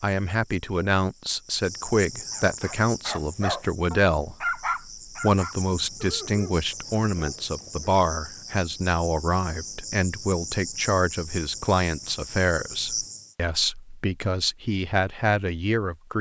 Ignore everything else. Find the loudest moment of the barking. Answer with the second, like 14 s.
5 s.